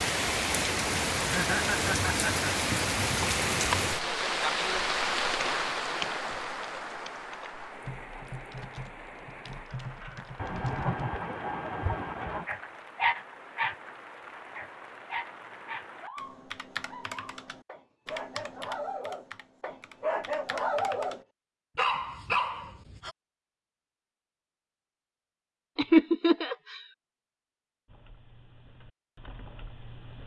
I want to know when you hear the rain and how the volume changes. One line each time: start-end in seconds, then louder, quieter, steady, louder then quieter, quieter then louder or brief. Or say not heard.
0.0-16.1 quieter.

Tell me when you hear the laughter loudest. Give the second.
26 s.